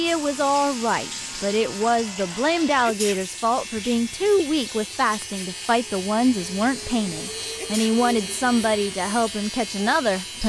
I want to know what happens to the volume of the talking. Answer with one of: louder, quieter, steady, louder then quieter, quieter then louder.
steady.